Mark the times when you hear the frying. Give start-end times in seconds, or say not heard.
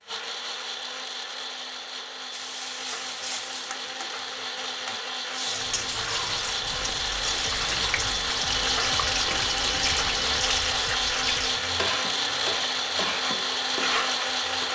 2.3-14.6.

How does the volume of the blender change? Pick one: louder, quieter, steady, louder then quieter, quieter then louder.
louder.